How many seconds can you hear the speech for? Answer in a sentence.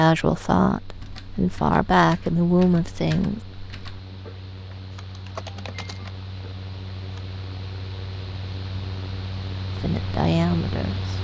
You can hear the speech for 5 seconds altogether.